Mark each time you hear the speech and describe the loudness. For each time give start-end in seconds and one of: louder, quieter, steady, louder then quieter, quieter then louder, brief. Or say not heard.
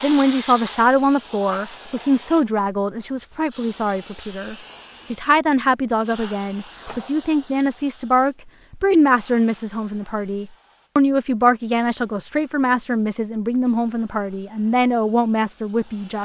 0.0-16.1 steady.